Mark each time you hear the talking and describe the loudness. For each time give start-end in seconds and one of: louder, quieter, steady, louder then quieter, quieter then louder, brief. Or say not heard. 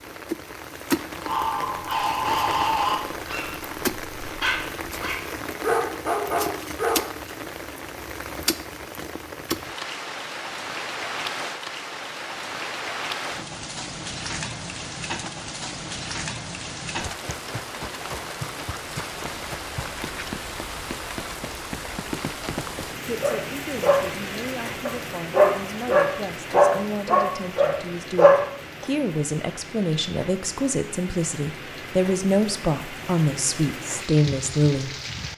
23.1-35.3 louder.